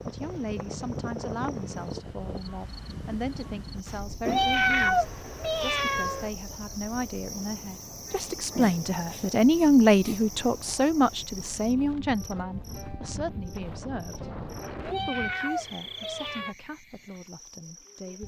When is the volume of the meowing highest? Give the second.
5 s.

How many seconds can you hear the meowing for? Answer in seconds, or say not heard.
4 s.